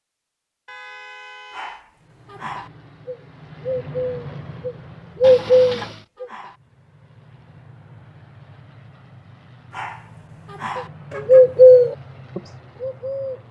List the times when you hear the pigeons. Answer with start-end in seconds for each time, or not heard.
3.0-6.3, 10.8-13.4.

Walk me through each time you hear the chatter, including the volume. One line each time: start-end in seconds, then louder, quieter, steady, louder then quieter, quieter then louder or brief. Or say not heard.
not heard.